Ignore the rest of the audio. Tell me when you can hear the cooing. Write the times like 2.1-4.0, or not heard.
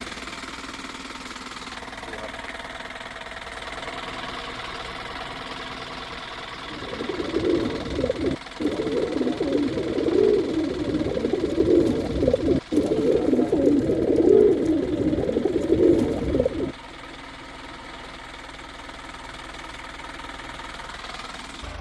6.7-16.8.